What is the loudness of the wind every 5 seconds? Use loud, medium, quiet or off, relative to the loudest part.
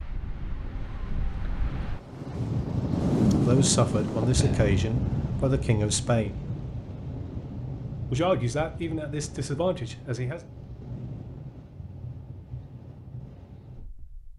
loud, medium, quiet.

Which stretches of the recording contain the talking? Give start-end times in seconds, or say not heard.
3.4-6.3, 8.1-10.4.